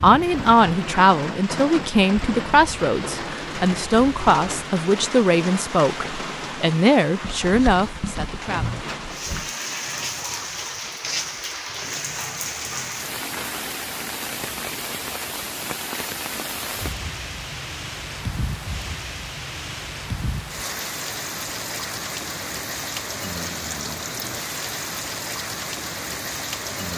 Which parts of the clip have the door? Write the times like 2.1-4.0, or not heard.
8.4-9.5.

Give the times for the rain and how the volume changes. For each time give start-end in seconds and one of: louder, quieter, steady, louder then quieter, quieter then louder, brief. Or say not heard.
0.0-26.9 steady.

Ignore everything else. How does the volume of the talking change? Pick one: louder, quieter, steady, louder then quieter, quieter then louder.
steady.